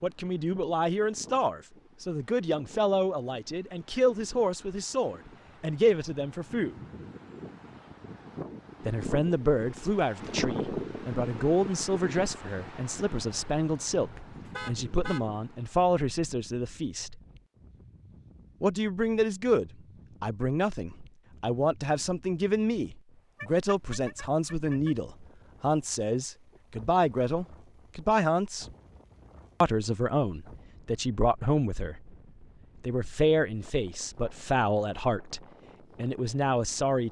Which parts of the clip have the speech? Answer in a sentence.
The speech can be heard from 0.0 to 6.8 s, from 8.8 to 17.2 s, from 18.6 to 28.6 s, from 29.6 to 32.1 s and from 32.8 to 37.0 s.